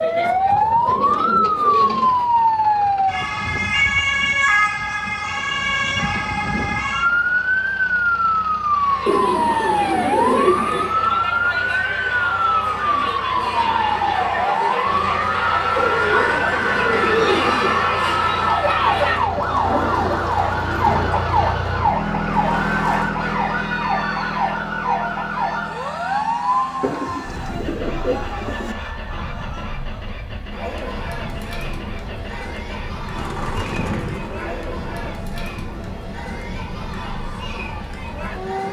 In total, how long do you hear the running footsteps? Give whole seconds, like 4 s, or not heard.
not heard.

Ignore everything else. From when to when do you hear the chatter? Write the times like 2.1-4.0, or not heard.
8.7-38.6.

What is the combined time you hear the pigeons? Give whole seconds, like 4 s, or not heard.
11 s.